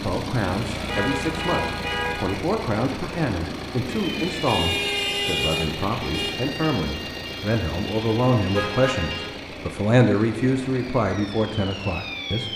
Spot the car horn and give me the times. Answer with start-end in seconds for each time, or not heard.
0.6-2.4, 4.5-6.3, 8.5-9.3.